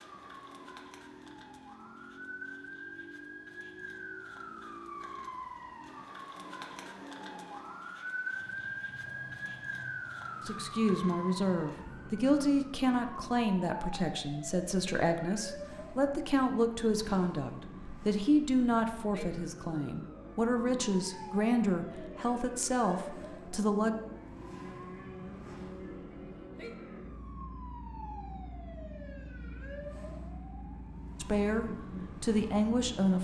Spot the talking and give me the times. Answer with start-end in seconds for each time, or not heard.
10.4-23.9, 31.2-33.2.